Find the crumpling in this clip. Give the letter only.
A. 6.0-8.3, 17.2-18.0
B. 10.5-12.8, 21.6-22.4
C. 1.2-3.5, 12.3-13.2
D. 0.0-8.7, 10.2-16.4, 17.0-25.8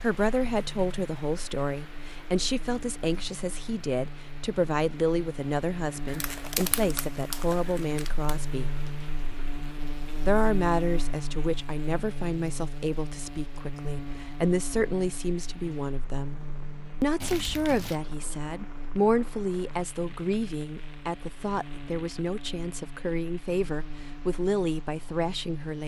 A.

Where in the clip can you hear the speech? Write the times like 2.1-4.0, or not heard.
0.0-8.7, 10.2-16.4, 17.0-25.8.